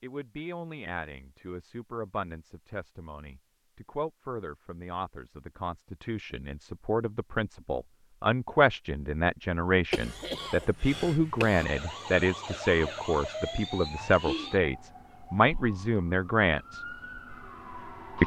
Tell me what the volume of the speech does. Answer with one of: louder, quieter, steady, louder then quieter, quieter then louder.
louder.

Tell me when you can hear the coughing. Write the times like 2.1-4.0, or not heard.
9.9-11.7.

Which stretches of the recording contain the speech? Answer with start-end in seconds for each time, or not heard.
0.0-16.8.